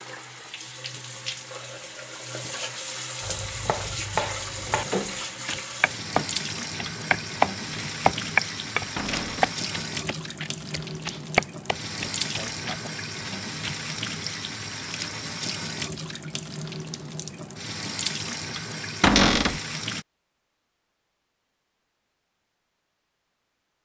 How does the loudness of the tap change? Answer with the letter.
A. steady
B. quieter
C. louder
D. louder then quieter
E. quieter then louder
A.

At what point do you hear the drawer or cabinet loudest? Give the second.
19 s.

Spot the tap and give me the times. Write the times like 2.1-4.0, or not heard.
0.0-20.1.